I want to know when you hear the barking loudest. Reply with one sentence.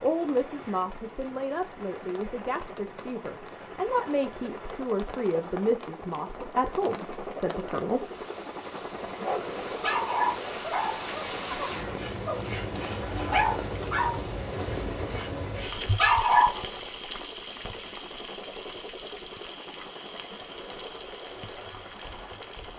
The loudest moment of the barking is at 16 seconds.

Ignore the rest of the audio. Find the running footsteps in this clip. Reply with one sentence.
You can't hear the running footsteps here.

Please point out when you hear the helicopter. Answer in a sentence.
You can hear the helicopter from 0.0 to 22.7 s.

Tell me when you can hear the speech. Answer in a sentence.
You can hear the speech from 0.0 to 8.1 s.